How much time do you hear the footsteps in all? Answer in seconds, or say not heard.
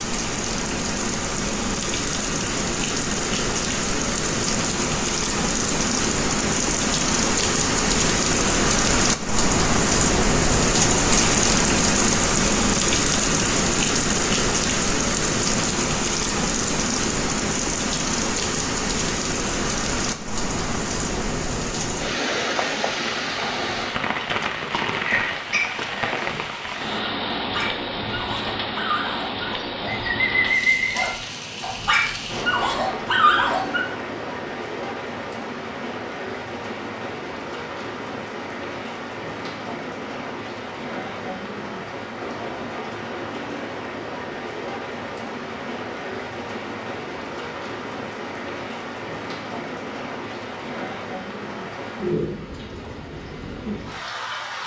not heard.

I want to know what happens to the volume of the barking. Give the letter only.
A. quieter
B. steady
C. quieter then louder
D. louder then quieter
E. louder
E.